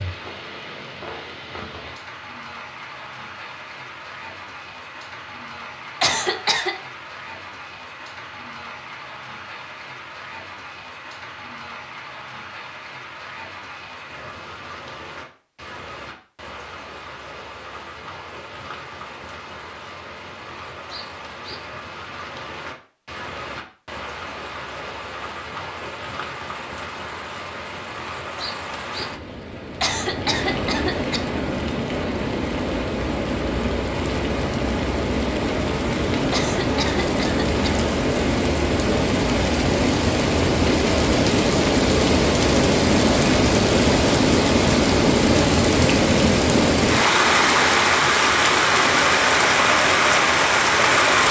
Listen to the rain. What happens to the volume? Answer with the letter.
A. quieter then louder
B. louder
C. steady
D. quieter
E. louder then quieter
B.